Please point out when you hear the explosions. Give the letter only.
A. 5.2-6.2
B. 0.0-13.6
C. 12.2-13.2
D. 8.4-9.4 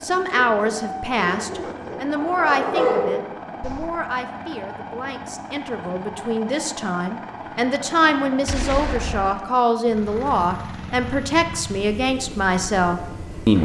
D.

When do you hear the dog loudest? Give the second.
3 s.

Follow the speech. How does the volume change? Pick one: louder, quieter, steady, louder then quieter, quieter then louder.
quieter then louder.